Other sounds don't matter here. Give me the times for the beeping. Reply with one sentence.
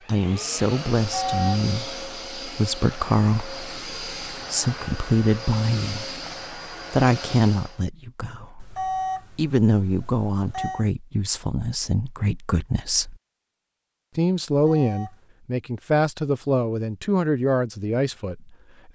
You can hear the beeping from 0.9 to 1.6 s, from 8.6 to 10.8 s and from 14.5 to 15.3 s.